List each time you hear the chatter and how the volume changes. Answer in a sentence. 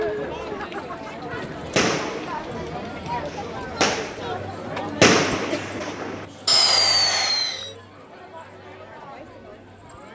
The chatter can be heard from 0.0 to 10.1 s, getting quieter.